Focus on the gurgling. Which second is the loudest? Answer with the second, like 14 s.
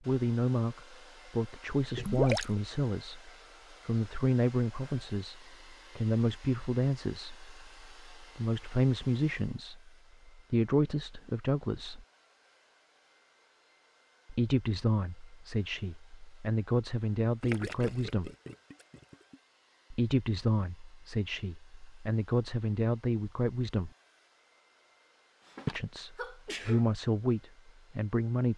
2 s.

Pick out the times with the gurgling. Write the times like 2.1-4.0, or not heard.
1.9-2.5, 17.4-19.4.